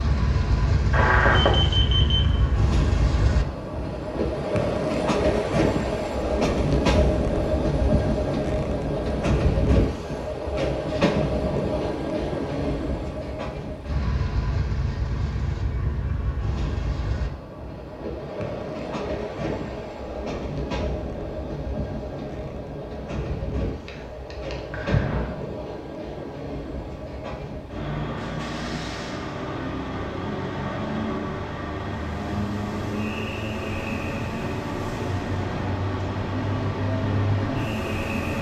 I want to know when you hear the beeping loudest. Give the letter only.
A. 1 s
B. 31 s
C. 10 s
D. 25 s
A.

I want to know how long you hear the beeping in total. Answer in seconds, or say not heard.
3 s.